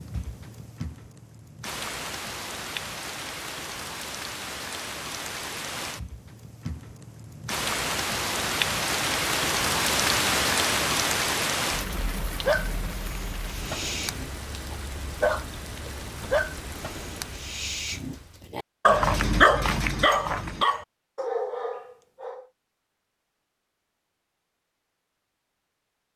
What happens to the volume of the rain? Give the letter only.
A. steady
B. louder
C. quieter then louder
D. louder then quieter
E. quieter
D.